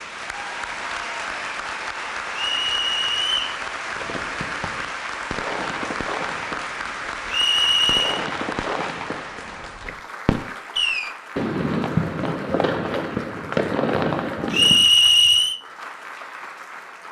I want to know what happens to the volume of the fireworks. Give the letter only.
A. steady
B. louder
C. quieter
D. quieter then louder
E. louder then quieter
B.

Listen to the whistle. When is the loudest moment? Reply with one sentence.
The loudest moment of the whistle is at 15 seconds.